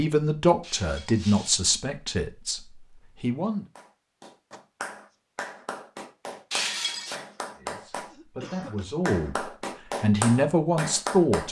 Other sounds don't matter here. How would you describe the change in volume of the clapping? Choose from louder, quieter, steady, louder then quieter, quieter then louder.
louder.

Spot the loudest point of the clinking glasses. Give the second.
7 s.